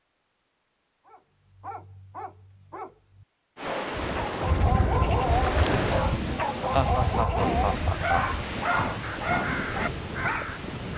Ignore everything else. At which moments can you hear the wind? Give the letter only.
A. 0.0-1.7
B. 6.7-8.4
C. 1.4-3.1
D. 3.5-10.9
D.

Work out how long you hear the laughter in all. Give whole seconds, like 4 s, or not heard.
2 s.